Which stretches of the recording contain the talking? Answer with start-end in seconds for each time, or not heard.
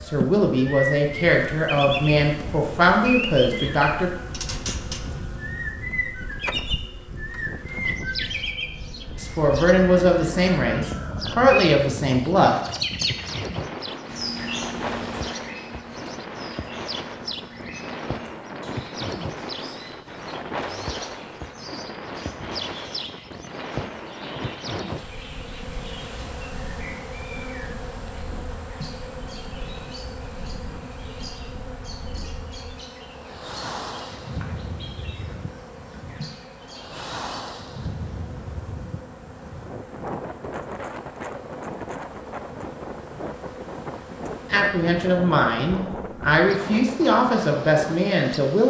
0.1-4.1, 9.2-12.6, 44.5-48.6.